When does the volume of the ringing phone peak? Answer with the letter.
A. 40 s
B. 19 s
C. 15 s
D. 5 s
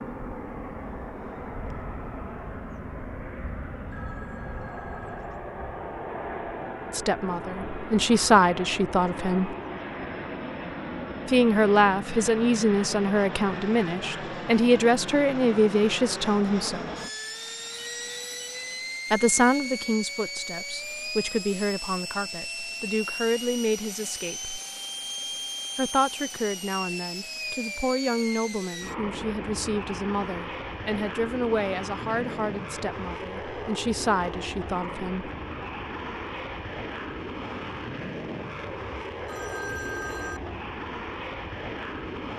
A.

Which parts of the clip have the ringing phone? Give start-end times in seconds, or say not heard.
3.9-5.2, 17.6-18.9, 39.2-40.4.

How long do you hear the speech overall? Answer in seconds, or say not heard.
23 s.